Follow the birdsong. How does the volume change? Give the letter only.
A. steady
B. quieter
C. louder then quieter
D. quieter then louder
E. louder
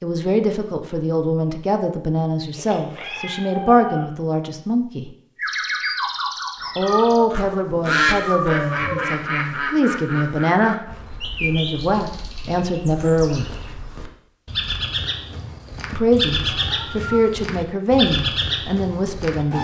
D.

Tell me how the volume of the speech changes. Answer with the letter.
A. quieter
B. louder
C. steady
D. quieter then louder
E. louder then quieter
C.